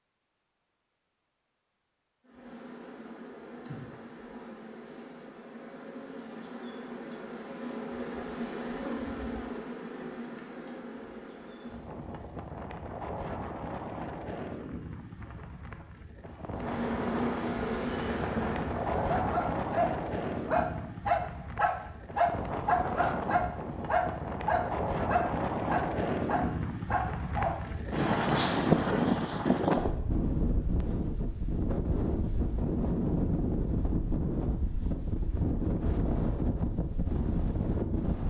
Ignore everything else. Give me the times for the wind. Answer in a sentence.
You can hear the wind from 11.7 to 38.2 s.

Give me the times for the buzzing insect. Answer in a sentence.
You can hear the buzzing insect from 2.2 to 12.0 s and from 16.5 to 20.6 s.